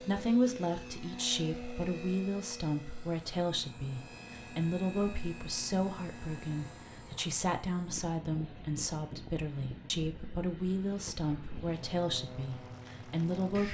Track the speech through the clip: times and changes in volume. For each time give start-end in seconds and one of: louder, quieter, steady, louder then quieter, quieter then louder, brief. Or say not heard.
0.0-13.6 steady.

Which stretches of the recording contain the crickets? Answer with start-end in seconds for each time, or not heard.
not heard.